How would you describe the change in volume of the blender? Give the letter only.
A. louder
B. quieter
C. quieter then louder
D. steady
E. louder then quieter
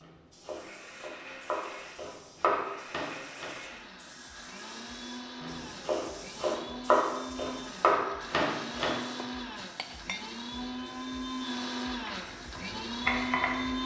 A.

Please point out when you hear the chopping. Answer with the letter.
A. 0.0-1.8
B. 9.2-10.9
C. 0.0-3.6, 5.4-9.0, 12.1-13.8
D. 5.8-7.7
C.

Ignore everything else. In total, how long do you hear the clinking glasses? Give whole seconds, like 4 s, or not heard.
2 s.